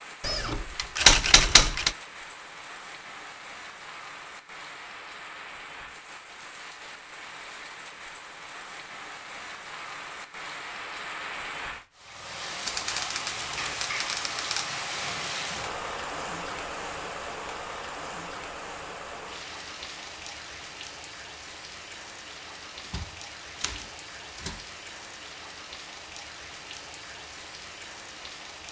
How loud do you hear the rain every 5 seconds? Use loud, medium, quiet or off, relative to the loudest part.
medium, medium, loud, loud, medium, medium.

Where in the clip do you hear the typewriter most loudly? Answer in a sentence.
The loudest moment of the typewriter is at 1 second.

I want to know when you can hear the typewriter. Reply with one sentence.
The typewriter can be heard from 0.2 to 1.9 s, from 12.7 to 14.7 s and from 22.9 to 24.6 s.